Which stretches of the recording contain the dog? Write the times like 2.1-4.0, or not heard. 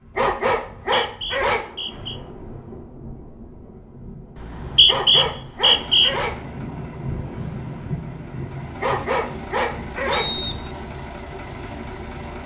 0.1-1.6, 4.8-6.4, 8.8-10.3.